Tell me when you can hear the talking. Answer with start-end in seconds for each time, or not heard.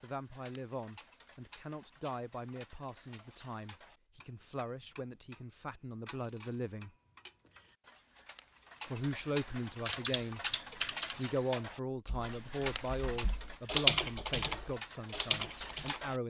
0.0-6.9, 8.8-10.4, 11.2-16.2.